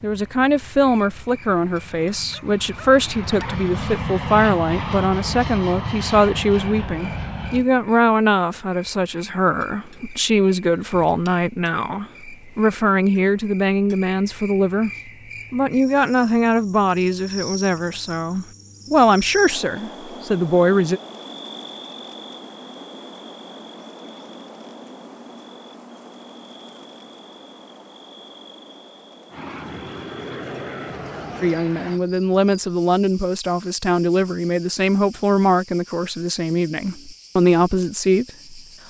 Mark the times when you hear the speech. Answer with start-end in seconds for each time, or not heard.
0.0-14.9, 15.5-21.0, 31.4-38.6.